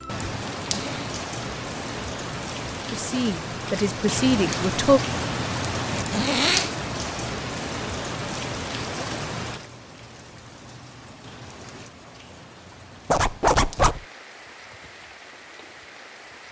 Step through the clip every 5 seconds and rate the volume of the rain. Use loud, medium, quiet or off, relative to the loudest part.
loud, loud, quiet, quiet.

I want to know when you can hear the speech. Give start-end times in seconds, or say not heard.
2.9-5.0.